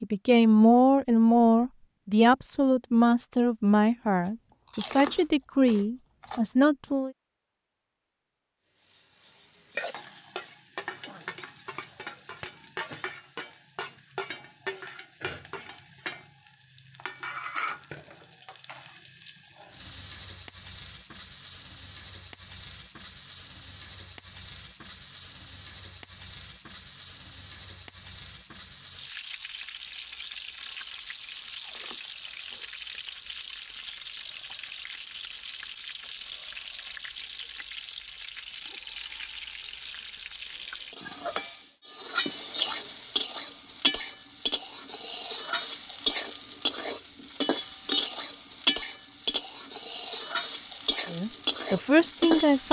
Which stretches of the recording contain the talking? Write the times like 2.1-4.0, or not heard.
0.0-7.1, 51.1-52.6.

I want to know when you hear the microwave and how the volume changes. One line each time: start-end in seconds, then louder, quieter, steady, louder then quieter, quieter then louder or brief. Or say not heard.
not heard.